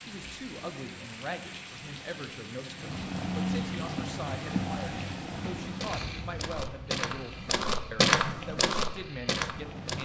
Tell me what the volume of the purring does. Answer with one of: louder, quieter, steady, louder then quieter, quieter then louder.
louder then quieter.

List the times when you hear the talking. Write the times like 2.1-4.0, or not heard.
0.0-10.0.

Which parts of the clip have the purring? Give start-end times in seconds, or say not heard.
0.0-10.0.